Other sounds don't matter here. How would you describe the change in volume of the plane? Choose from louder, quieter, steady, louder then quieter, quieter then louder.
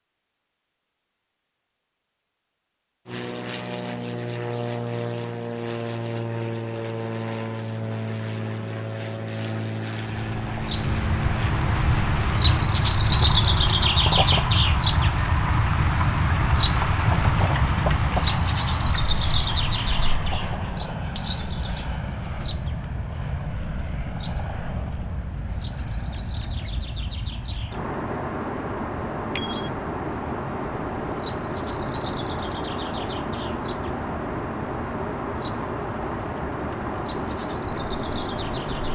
steady.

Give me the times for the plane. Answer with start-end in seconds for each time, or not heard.
3.0-38.9.